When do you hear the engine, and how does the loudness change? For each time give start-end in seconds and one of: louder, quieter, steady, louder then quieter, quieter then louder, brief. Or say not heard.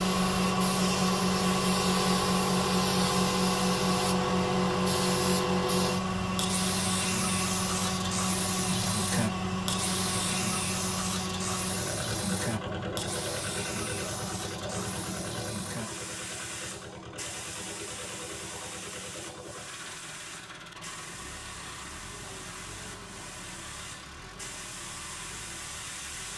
0.0-26.3 quieter.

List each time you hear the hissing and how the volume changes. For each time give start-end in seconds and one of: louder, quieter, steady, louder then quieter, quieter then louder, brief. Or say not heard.
0.0-26.3 quieter.